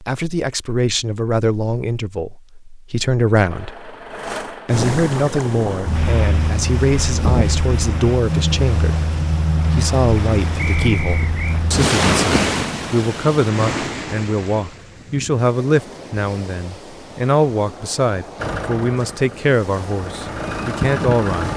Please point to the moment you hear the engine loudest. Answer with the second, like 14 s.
21 s.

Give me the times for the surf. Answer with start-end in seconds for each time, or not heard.
4.7-21.5.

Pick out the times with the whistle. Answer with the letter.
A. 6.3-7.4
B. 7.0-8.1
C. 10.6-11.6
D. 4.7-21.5
C.